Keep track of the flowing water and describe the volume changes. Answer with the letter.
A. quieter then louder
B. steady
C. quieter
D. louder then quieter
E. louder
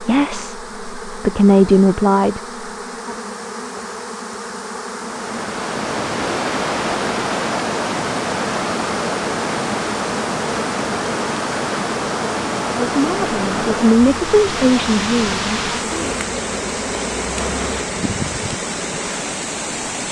B.